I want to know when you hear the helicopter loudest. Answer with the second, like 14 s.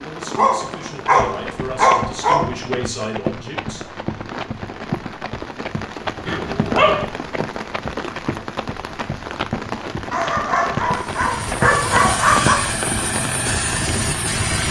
14 s.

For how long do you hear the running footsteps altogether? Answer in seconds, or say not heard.
12 s.